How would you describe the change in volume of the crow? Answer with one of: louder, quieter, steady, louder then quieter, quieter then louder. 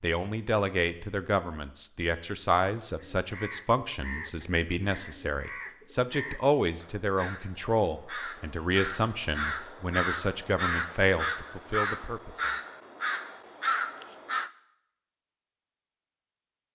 louder.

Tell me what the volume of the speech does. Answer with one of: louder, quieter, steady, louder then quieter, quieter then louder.
steady.